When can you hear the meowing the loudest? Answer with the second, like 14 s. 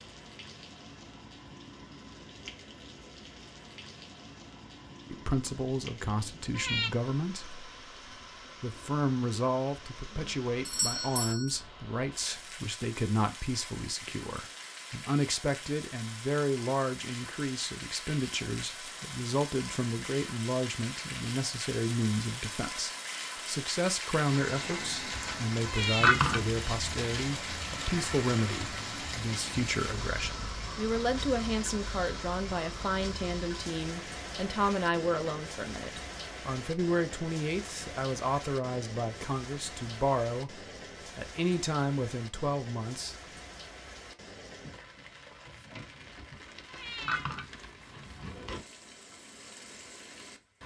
26 s.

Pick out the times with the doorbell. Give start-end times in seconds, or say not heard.
10.7-11.6.